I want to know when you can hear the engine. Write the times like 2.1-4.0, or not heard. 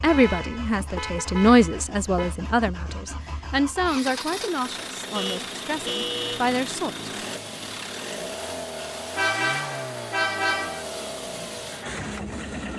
0.0-12.7.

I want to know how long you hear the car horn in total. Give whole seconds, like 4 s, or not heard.
5 s.